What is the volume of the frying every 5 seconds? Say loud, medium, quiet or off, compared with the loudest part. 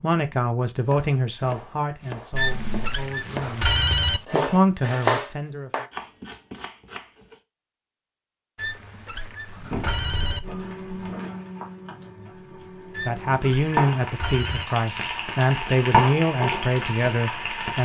off, off, medium, loud.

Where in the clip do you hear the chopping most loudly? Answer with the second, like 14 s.
5 s.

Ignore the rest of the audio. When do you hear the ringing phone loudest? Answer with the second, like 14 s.
4 s.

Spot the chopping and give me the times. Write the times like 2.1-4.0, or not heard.
0.8-7.4.